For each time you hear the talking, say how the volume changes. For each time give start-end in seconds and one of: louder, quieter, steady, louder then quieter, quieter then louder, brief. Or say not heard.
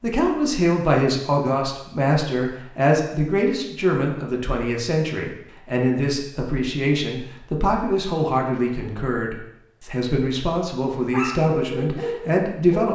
0.0-12.9 steady.